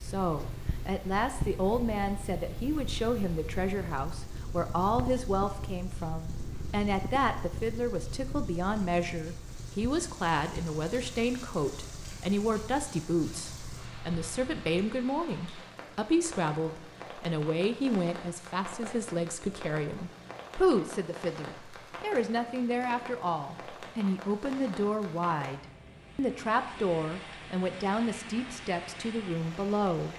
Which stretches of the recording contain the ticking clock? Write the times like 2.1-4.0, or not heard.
not heard.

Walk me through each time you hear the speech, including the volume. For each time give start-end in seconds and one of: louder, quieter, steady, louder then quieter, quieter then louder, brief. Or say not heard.
0.0-30.1 steady.